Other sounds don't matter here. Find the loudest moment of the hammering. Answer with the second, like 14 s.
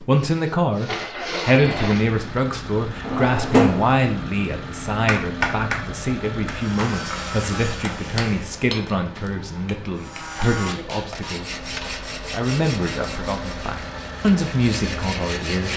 6 s.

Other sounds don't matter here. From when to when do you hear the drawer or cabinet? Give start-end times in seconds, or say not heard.
3.0-3.9.